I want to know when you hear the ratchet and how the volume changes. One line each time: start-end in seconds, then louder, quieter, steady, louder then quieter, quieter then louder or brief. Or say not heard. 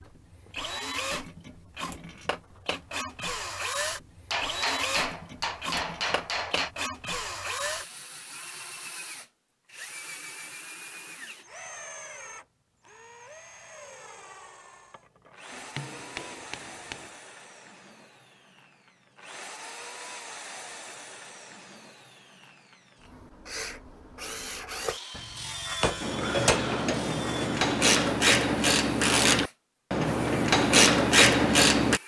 26.0-32.0 louder.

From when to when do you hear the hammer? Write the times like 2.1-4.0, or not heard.
4.3-6.7, 15.5-17.1, 25.1-26.6.